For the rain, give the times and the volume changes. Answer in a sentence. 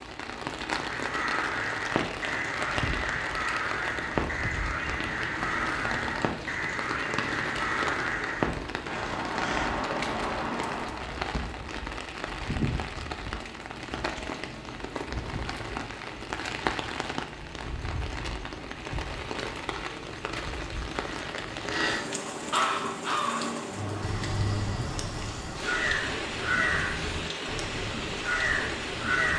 The rain can be heard from 0.0 to 29.3 s, at a steady volume.